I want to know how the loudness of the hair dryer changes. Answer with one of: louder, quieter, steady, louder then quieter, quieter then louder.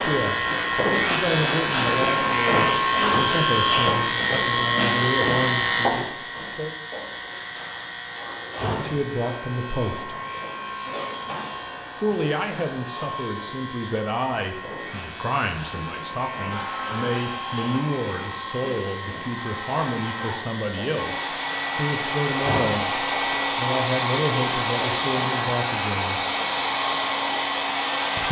louder.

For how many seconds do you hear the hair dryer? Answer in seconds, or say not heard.
12 s.